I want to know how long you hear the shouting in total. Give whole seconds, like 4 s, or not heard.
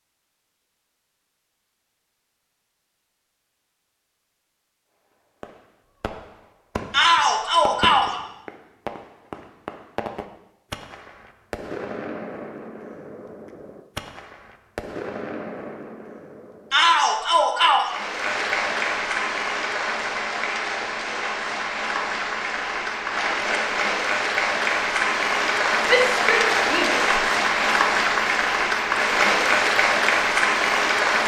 4 s.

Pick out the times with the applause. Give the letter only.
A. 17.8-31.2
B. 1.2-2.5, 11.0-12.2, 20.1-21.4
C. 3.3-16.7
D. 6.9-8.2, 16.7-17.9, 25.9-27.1
A.